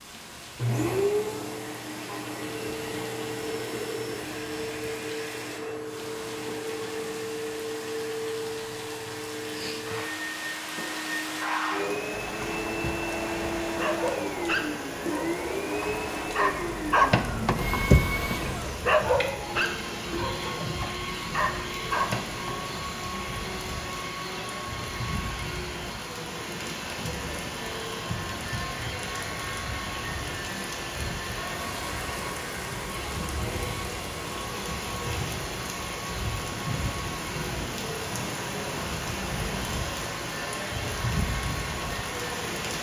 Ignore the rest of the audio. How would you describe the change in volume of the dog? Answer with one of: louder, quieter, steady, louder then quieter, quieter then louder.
louder then quieter.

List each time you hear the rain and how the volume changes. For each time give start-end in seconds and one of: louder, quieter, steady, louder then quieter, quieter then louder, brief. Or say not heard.
0.0-42.7 louder.